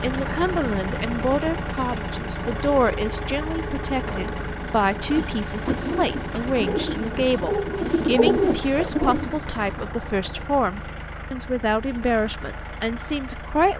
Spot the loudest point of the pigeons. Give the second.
8 s.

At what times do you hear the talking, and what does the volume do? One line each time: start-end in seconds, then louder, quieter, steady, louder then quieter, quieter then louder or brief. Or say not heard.
0.0-13.7 steady.